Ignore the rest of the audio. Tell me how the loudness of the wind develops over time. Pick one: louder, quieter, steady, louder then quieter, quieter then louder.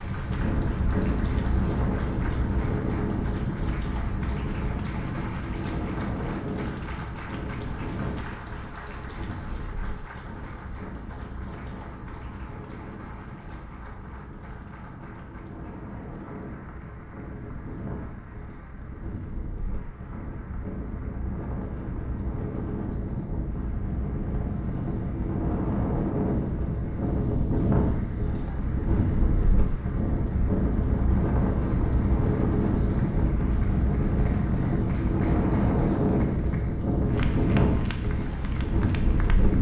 quieter then louder.